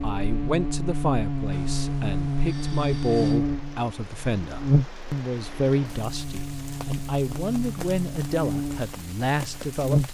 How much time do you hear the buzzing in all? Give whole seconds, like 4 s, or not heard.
10 s.